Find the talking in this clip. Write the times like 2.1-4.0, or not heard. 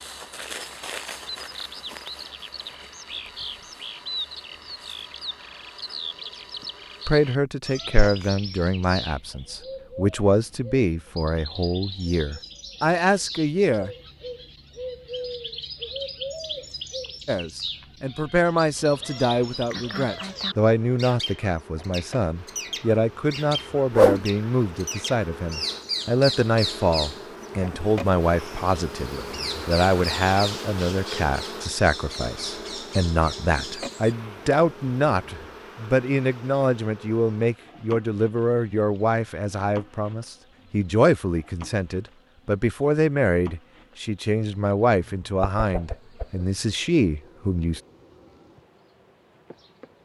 7.0-13.9, 17.2-47.8.